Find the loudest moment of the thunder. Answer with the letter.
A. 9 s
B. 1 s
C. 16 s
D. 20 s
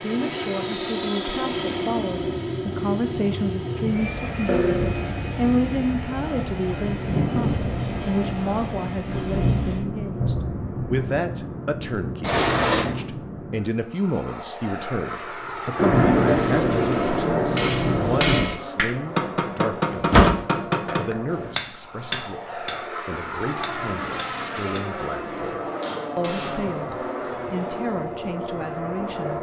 C.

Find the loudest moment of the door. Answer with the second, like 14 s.
20 s.